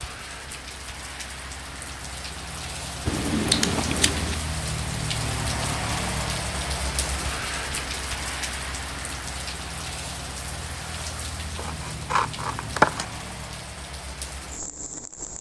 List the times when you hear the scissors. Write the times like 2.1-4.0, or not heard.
3.0-4.4, 11.6-13.1.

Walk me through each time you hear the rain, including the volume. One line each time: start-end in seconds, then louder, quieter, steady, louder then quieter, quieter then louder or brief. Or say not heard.
0.0-15.3 louder then quieter.